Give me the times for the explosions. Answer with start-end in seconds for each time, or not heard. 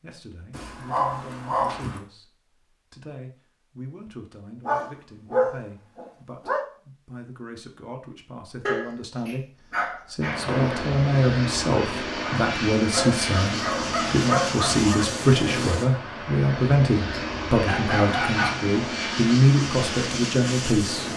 10.4-10.9.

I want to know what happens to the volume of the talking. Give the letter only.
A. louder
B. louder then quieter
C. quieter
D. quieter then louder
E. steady
A.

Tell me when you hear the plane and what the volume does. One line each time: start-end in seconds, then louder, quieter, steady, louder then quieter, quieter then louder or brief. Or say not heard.
10.2-21.1 steady.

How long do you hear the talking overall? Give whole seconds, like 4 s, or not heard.
21 s.